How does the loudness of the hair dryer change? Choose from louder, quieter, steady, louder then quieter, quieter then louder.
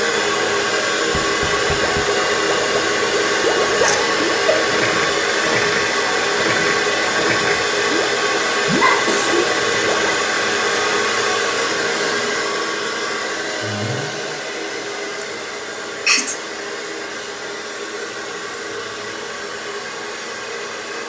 quieter.